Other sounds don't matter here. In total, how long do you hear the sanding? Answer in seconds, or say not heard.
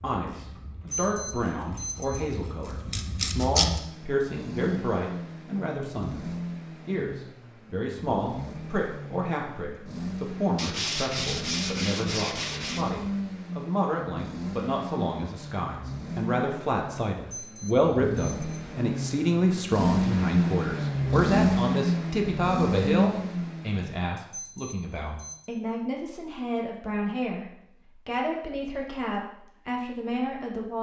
2 s.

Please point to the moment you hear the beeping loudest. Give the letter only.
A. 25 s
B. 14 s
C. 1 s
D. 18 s
C.